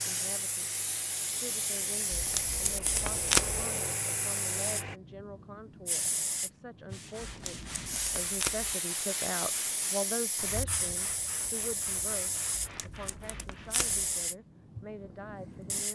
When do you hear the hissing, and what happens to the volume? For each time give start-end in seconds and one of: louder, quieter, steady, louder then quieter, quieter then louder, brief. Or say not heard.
0.0-15.8 steady.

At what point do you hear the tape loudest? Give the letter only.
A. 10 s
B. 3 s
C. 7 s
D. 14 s
B.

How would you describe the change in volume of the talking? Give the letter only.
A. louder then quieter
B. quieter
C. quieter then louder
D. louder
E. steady
A.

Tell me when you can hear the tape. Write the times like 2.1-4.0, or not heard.
2.1-3.6, 7.2-8.8, 12.6-14.1.